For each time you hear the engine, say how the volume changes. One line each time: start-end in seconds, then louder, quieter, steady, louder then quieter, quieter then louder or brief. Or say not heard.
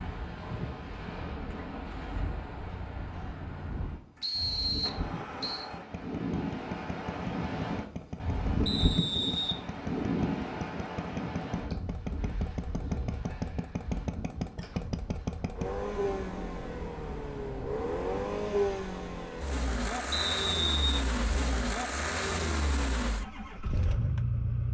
0.0-24.6 louder.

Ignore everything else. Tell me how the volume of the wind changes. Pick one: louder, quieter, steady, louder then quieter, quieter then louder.
louder then quieter.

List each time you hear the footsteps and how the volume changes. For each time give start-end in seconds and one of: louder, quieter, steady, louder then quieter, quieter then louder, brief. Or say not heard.
not heard.